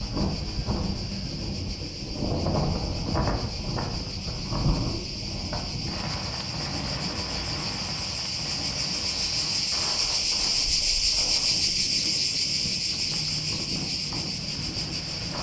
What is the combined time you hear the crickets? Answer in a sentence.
The crickets can be heard for 15 seconds in total.